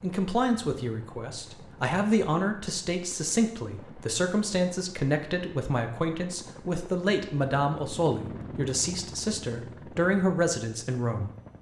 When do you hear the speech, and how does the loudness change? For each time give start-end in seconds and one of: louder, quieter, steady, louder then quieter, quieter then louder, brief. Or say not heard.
0.0-11.3 steady.